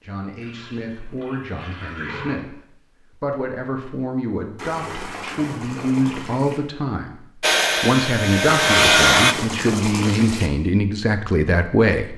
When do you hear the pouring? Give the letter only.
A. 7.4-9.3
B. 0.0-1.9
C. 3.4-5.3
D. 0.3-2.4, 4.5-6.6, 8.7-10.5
D.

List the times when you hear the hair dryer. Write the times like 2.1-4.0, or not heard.
7.4-9.3.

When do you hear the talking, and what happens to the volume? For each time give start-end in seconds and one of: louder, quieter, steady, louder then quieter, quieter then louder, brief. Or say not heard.
0.0-2.5 brief
3.1-12.1 louder.